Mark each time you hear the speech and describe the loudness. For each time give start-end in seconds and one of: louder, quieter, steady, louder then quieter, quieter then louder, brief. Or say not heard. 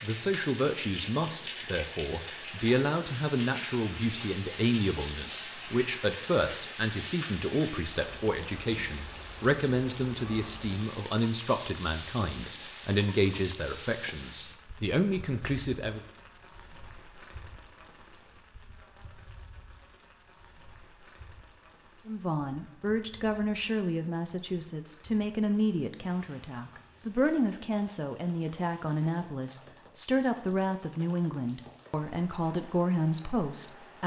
0.0-16.0 steady
22.1-34.0 steady.